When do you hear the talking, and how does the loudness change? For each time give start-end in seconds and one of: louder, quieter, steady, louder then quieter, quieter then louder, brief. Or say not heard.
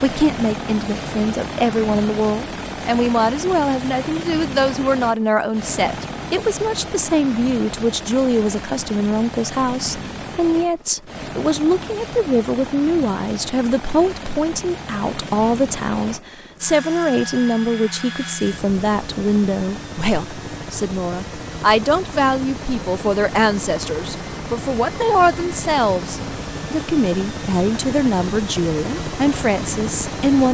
0.0-30.4 steady.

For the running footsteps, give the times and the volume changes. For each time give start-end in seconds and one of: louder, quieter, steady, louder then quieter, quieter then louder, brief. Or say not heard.
not heard.